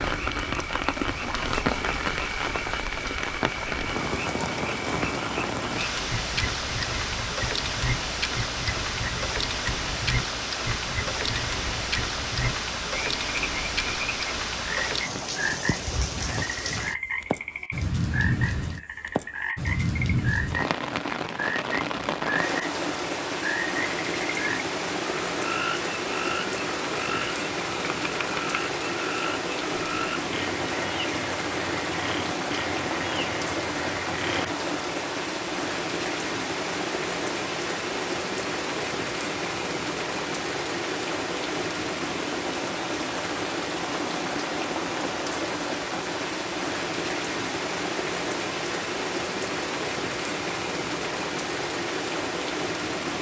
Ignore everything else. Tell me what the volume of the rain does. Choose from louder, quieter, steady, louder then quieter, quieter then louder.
steady.